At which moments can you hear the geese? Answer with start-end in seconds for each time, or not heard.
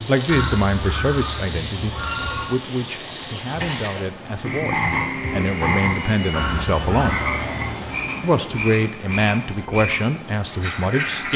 0.2-2.5, 6.3-8.0.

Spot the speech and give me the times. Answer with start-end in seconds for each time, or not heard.
0.1-7.2, 8.2-11.3.